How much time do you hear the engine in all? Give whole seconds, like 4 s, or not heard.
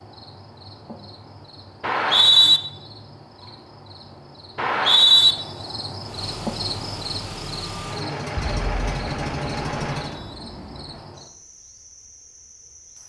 4 s.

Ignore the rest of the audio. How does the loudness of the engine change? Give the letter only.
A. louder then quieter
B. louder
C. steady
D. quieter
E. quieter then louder
B.